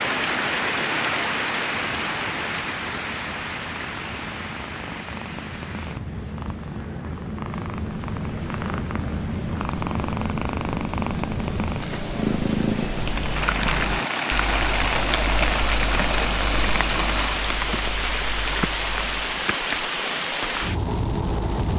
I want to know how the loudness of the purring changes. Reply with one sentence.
The loudness of the purring goes up.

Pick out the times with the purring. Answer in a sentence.
The purring can be heard from 1.8 to 14.1 s.